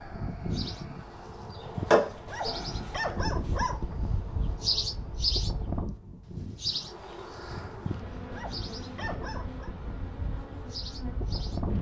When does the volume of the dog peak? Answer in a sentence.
The loudest moment of the dog is at 3 seconds.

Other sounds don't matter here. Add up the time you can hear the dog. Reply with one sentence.
You can hear the dog for 3 seconds altogether.